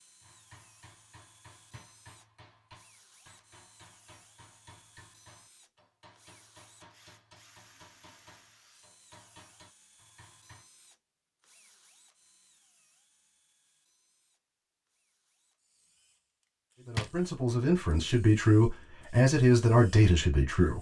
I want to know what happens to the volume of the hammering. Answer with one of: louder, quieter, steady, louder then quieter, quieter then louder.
steady.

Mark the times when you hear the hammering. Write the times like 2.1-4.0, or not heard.
0.2-10.7.